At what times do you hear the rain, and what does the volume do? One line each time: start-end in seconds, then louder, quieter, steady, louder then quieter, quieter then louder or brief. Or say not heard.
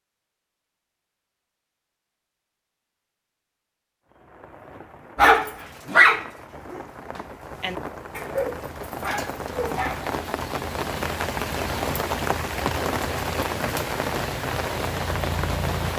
4.0-15.9 louder.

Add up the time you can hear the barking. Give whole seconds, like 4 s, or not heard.
5 s.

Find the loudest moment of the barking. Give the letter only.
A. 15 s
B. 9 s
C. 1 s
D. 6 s
D.